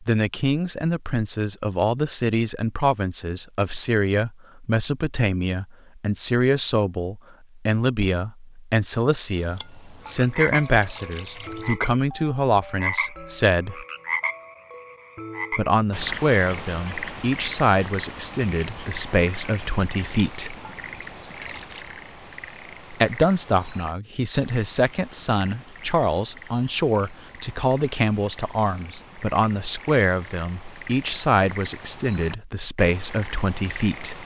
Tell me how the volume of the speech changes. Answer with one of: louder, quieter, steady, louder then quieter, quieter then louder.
steady.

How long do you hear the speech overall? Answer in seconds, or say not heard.
30 s.